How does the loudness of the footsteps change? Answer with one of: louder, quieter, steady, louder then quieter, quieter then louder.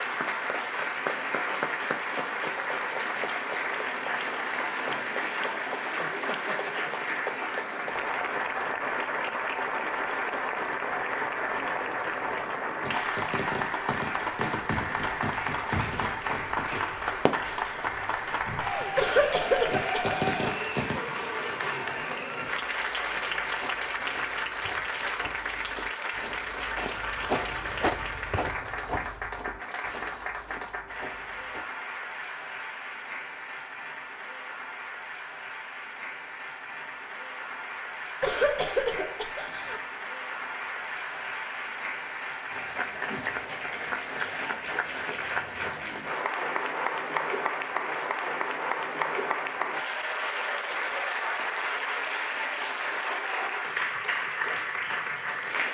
louder then quieter.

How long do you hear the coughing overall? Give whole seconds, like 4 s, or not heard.
3 s.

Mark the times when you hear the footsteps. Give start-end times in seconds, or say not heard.
22.4-31.6.